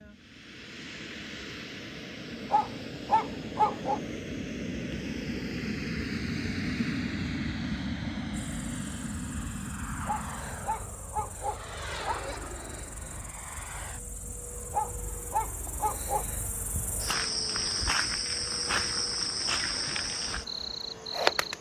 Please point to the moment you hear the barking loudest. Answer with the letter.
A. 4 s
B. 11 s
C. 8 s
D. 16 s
A.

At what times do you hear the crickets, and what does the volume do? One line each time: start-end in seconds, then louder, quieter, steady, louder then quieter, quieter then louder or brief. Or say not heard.
8.6-21.5 louder.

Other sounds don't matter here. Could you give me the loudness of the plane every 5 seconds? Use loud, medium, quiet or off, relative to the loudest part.
medium, loud, medium, quiet, quiet.